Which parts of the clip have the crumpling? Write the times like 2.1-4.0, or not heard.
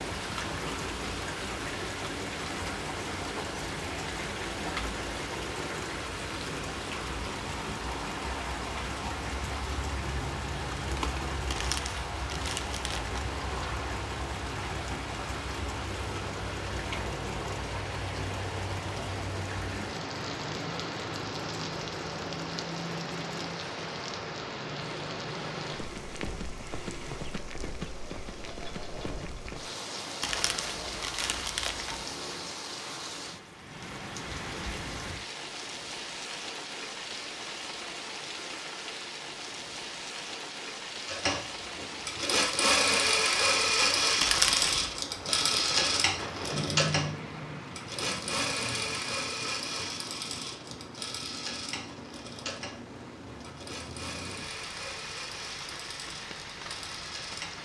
11.5-13.3, 30.2-32.0, 44.2-45.0.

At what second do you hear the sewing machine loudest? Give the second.
43 s.